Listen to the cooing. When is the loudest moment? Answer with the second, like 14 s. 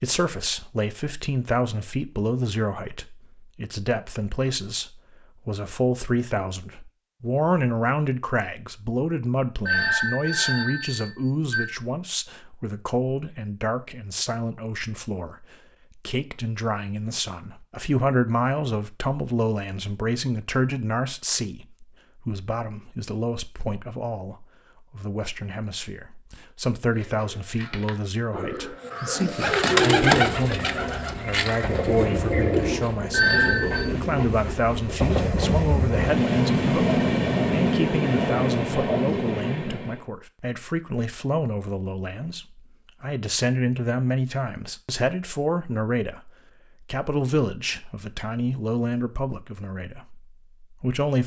30 s.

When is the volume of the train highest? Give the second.
37 s.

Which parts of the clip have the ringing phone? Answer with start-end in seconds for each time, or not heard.
9.7-11.7, 33.1-33.9.